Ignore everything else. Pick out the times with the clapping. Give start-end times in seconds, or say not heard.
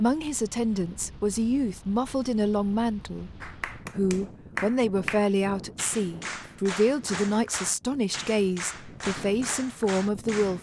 3.4-10.5.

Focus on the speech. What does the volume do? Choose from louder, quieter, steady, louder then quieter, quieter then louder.
steady.